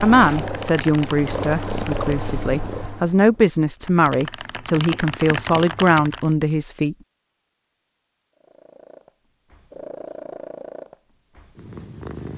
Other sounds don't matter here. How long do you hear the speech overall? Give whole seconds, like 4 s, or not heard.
7 s.